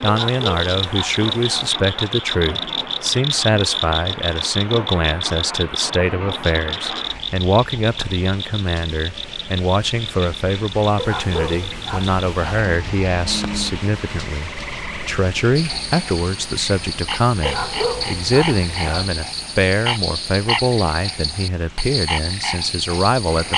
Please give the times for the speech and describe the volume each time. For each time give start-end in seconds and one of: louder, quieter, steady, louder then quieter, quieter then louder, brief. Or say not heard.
0.0-23.5 steady.